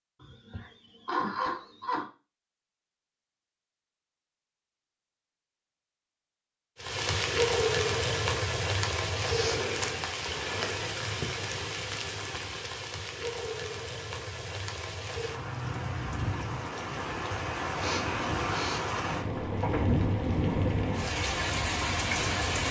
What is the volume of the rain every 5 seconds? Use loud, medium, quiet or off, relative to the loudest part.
off, loud, medium, loud, loud.